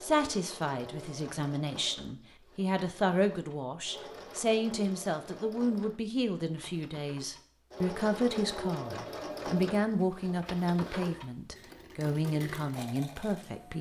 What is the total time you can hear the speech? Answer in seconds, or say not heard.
14 s.